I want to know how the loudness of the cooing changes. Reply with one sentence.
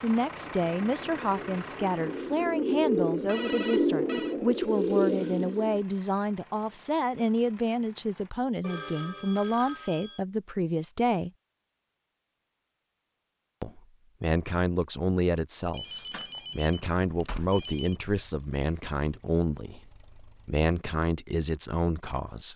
The loudness of the cooing goes up.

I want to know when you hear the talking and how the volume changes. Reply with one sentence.
The talking can be heard from 0.0 to 11.3 s, at a steady volume; and from 13.6 to 22.5 s, at a steady volume.